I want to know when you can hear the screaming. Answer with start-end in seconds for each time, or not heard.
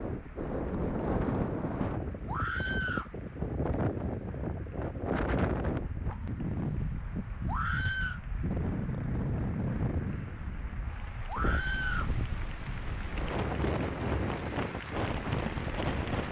2.2-3.1, 7.5-8.2, 11.2-12.2.